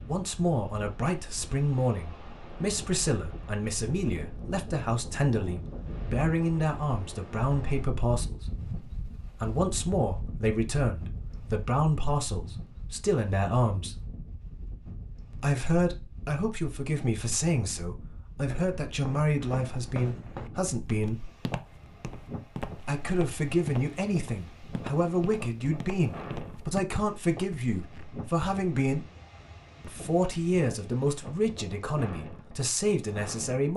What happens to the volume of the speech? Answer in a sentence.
The loudness of the speech stays about the same.